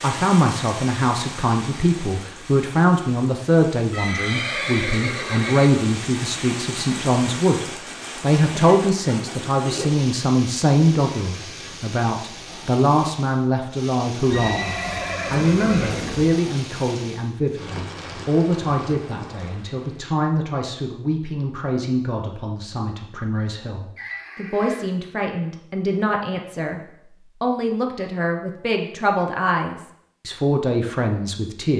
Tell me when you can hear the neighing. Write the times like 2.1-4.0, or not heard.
3.9-5.8, 14.3-16.3, 23.9-24.9.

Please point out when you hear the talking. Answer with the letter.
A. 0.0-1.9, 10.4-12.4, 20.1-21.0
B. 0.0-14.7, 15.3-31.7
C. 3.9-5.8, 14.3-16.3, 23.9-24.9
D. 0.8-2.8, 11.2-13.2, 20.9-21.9
B.